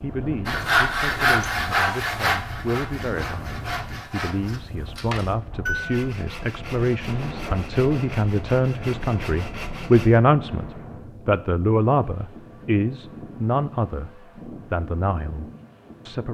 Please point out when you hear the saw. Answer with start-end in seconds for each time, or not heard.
0.5-10.2.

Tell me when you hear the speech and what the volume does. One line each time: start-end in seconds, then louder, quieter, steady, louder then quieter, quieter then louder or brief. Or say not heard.
0.0-16.2 louder then quieter.